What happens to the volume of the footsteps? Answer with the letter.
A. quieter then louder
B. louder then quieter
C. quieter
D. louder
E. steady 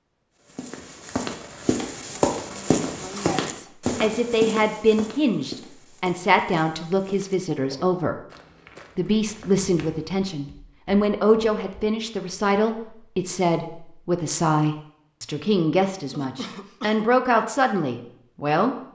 C.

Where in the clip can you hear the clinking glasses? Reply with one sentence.
You can't hear the clinking glasses here.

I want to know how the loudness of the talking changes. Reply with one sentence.
The volume of the talking stays about the same.